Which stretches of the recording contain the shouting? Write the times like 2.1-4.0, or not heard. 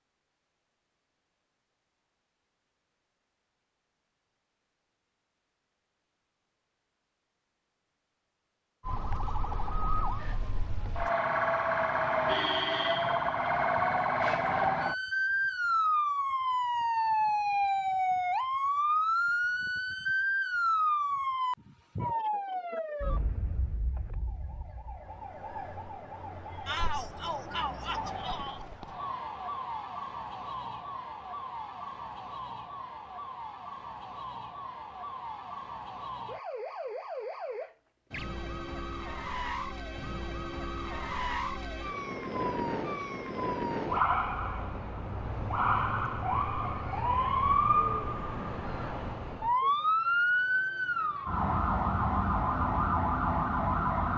26.6-28.6.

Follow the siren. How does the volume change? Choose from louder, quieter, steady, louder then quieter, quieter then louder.
quieter then louder.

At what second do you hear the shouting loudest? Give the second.
27 s.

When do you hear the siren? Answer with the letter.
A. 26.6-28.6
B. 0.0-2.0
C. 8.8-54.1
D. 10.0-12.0
C.